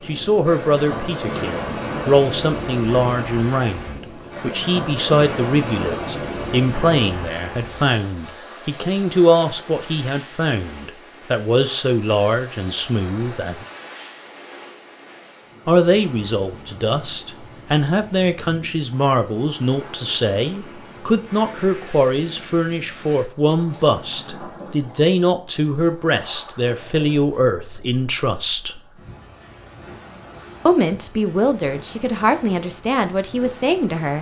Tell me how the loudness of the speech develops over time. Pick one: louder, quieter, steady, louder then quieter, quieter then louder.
steady.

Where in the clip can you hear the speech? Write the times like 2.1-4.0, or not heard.
0.1-13.7, 15.7-28.8, 30.6-34.1.